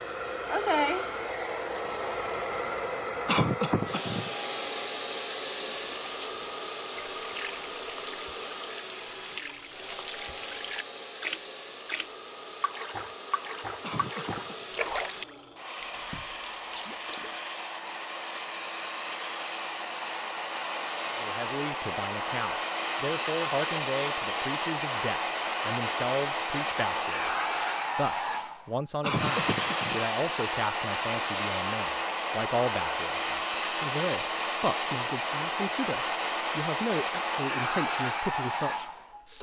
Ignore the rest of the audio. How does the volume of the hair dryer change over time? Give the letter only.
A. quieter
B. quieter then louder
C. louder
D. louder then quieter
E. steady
B.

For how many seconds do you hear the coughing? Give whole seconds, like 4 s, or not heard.
3 s.